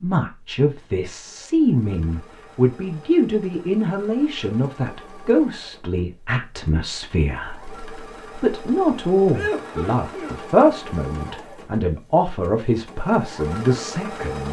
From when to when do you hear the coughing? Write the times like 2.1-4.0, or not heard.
9.3-10.7.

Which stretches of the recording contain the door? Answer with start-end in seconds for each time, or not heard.
not heard.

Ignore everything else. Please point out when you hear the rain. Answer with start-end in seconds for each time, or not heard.
not heard.